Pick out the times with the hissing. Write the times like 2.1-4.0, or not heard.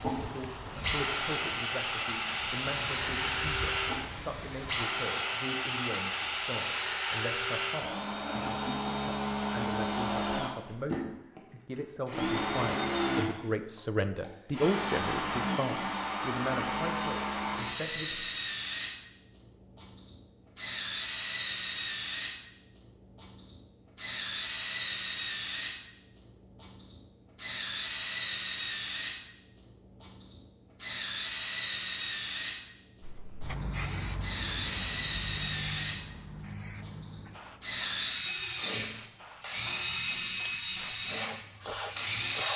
0.0-4.9, 33.0-42.5.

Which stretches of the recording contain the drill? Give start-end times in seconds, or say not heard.
0.0-42.5.